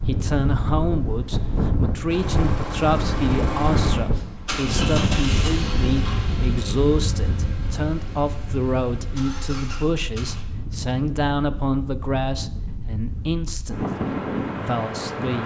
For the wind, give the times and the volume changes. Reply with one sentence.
The wind can be heard from 0.0 to 15.4 s, getting quieter then louder.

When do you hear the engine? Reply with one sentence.
The engine can be heard from 2.0 to 10.4 s.